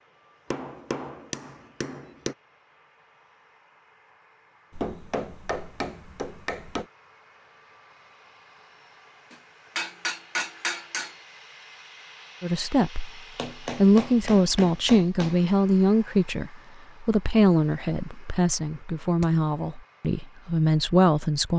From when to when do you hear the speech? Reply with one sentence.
The speech can be heard from 12.4 to 13.1 s and from 13.8 to 21.5 s.